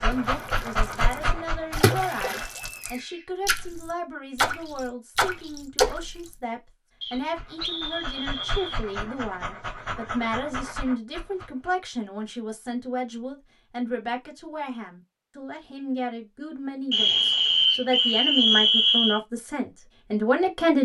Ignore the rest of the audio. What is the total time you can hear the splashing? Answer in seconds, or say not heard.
6 s.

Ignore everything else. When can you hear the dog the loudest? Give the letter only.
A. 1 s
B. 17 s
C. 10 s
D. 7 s
A.